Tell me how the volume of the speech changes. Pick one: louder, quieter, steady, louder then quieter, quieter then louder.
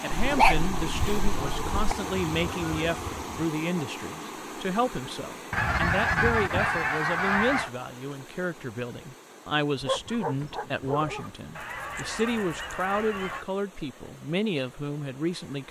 steady.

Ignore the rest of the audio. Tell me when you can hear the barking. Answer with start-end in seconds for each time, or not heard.
0.1-1.9, 9.8-11.4.